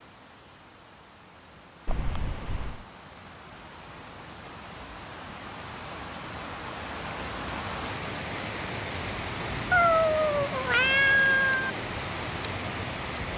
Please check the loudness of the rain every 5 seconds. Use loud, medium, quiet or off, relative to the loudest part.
quiet, loud, loud.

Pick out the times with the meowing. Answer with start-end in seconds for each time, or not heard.
1.9-2.9, 9.7-11.7.